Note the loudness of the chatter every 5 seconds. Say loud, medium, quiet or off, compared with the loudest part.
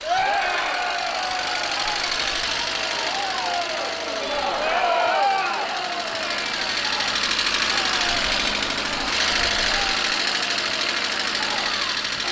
loud, loud, medium.